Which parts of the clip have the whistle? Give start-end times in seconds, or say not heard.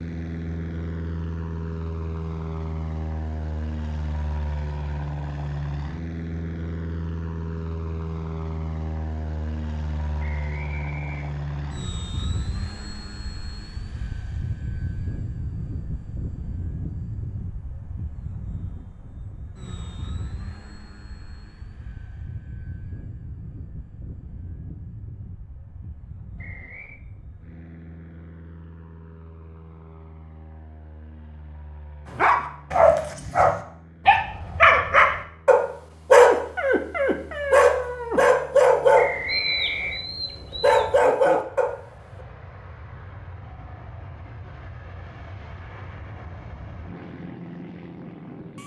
10.2-11.8, 26.4-27.0, 39.0-40.0.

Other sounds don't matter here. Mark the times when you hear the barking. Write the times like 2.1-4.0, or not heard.
32.1-41.8.